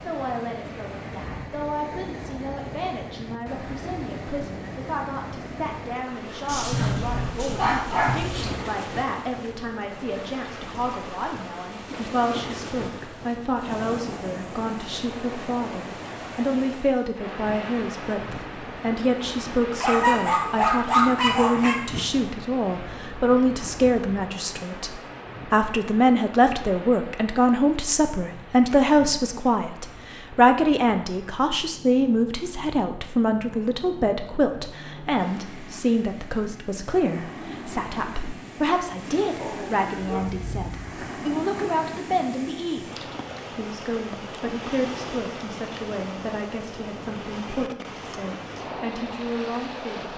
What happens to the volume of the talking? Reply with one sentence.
The loudness of the talking goes up, then down.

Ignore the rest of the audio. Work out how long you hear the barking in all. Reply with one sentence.
You can hear the barking for 6 seconds altogether.